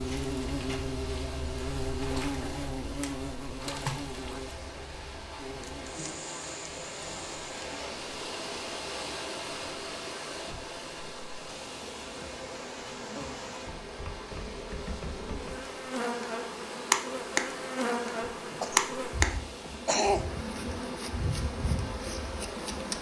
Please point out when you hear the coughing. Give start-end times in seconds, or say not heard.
18.5-20.5.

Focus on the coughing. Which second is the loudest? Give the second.
20 s.